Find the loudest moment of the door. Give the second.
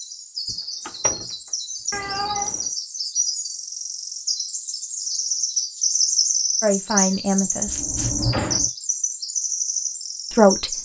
8 s.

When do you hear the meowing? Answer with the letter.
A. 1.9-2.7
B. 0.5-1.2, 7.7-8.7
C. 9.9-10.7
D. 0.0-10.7
A.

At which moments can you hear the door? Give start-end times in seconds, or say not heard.
0.5-1.2, 7.7-8.7.